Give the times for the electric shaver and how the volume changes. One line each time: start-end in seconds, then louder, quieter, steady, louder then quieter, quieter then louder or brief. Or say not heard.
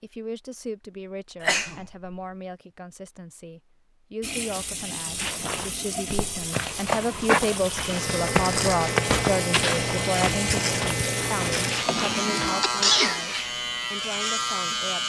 7.7-15.0 steady.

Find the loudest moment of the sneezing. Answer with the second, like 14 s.
13 s.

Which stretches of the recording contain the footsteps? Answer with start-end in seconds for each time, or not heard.
5.2-12.6.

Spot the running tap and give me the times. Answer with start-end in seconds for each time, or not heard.
4.2-11.6.